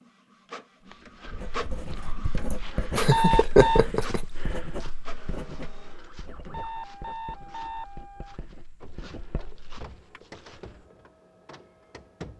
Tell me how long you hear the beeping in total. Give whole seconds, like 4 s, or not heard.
2 s.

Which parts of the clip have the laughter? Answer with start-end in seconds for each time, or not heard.
2.5-4.2.